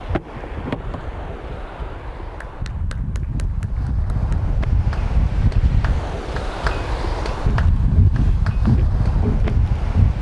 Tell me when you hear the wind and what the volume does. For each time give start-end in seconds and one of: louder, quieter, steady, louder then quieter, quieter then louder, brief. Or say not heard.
0.0-10.1 louder.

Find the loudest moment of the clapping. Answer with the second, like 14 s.
7 s.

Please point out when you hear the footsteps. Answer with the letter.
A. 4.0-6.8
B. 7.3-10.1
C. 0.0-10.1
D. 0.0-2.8
B.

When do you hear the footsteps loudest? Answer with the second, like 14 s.
9 s.